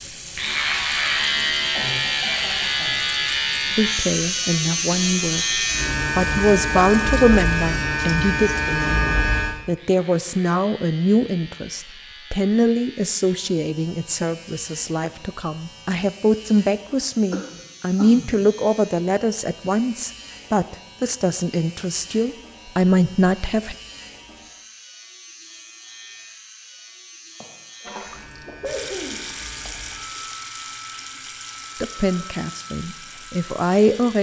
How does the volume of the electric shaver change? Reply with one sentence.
The loudness of the electric shaver goes down.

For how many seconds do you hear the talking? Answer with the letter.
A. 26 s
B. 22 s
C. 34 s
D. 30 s
B.